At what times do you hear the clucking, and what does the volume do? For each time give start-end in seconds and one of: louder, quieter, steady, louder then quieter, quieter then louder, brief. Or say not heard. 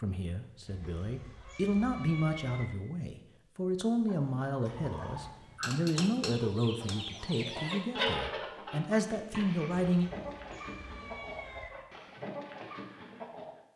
4.0-13.6 louder then quieter.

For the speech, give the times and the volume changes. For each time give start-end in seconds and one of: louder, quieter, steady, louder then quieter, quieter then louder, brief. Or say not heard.
0.0-10.1 steady.